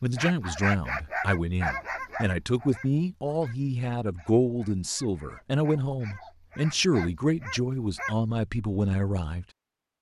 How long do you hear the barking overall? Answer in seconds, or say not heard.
8 s.